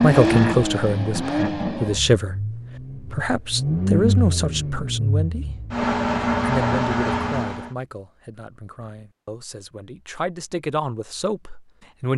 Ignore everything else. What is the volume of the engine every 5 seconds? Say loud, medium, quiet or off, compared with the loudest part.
loud, loud, off.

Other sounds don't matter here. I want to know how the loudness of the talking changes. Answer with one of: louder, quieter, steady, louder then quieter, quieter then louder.
quieter then louder.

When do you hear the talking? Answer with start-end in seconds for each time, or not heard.
0.0-5.7, 6.5-12.1.